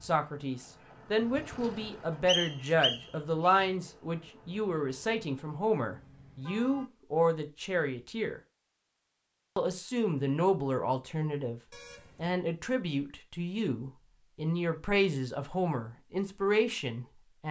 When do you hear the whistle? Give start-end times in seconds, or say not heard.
2.2-3.7.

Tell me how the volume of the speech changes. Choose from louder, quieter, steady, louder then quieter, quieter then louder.
steady.